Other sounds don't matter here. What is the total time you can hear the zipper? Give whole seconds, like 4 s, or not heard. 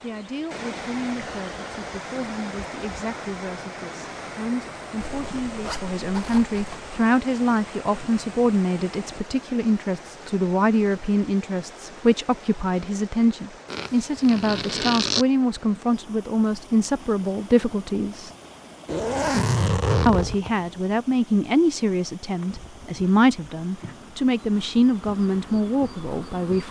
5 s.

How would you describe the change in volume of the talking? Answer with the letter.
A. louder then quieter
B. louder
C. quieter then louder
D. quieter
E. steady
B.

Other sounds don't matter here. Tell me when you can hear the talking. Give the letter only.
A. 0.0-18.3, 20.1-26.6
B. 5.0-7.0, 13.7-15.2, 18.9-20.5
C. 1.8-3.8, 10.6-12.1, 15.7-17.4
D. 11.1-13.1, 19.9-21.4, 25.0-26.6
A.